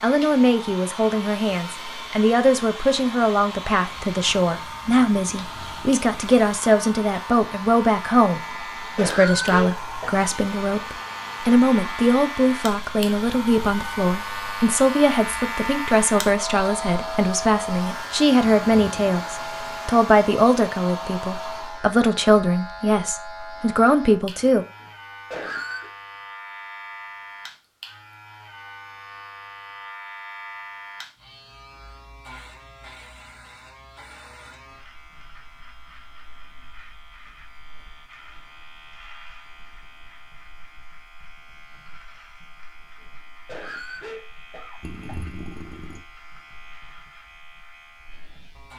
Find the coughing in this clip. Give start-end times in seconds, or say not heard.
8.4-10.2, 24.8-25.9, 43.0-45.2.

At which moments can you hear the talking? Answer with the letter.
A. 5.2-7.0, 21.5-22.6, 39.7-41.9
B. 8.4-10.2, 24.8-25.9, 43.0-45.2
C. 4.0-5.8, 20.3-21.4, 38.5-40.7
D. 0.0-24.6
D.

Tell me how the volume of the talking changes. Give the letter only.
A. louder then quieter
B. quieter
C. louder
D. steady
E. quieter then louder
D.